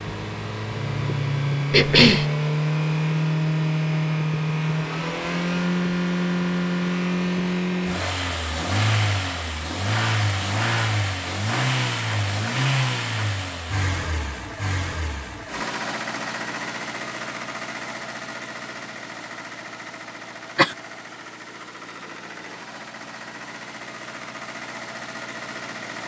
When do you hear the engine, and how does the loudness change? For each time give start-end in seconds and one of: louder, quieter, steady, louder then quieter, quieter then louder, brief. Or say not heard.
0.0-26.0 quieter.